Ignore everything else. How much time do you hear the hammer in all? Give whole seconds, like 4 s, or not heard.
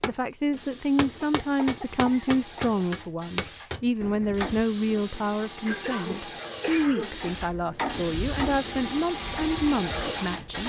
8 s.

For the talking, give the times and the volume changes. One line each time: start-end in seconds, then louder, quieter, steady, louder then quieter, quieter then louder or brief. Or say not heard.
0.0-10.6 steady.